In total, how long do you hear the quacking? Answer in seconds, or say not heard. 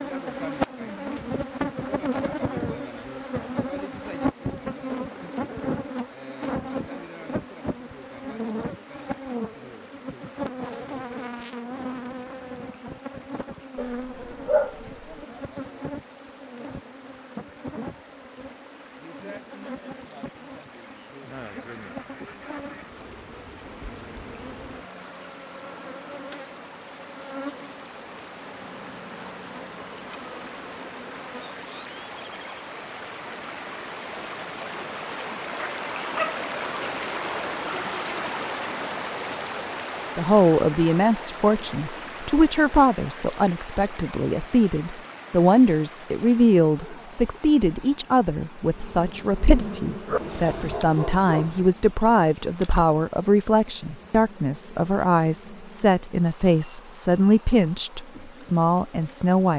2 s.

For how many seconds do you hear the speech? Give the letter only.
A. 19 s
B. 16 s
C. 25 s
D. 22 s
A.